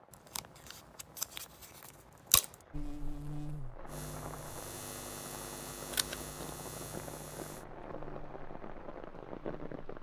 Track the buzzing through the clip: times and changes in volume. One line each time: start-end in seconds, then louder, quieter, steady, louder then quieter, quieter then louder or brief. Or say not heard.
2.7-9.8 quieter.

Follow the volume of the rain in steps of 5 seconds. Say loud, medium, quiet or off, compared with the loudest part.
medium, loud.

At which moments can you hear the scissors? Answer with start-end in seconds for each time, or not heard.
0.3-2.5, 5.9-6.3.